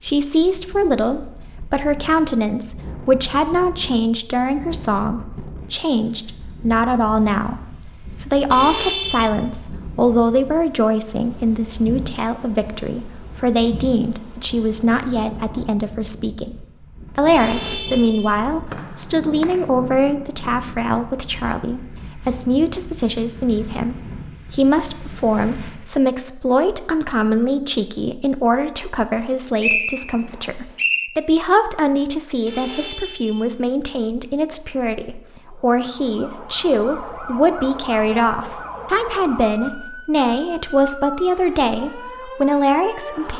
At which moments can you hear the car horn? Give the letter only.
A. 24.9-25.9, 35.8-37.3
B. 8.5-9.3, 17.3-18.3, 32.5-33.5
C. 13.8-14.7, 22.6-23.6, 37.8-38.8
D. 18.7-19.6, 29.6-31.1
B.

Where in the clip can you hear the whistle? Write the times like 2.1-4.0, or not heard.
18.7-19.6, 29.6-31.1.